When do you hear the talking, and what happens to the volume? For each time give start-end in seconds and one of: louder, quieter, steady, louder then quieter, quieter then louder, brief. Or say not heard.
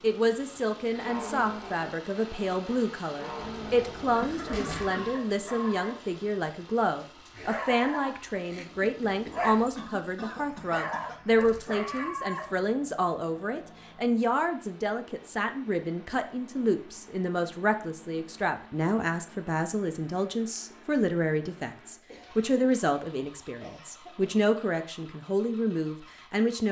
0.0-26.6 steady.